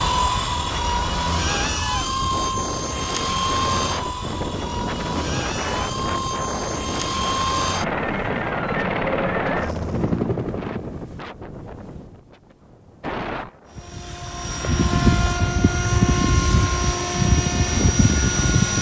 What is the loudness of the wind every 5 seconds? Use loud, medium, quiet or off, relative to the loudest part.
loud, loud, medium, medium.